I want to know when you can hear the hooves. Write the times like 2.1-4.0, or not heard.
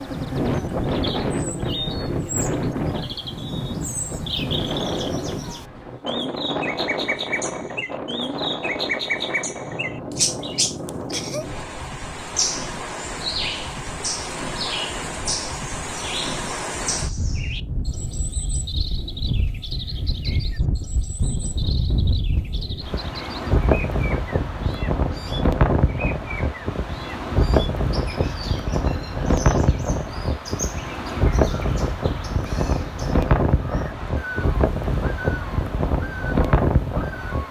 not heard.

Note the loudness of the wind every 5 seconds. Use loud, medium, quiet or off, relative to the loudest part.
loud, medium, medium, medium, loud, loud, loud, loud.